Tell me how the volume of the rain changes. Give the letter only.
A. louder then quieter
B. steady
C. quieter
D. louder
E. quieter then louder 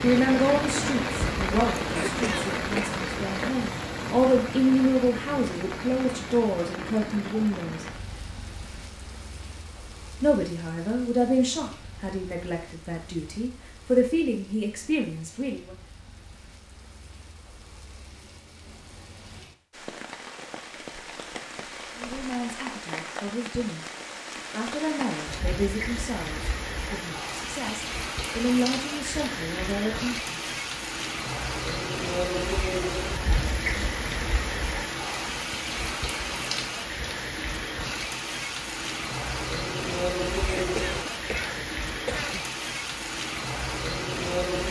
E.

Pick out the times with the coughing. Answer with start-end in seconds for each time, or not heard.
1.9-2.9, 40.5-42.5.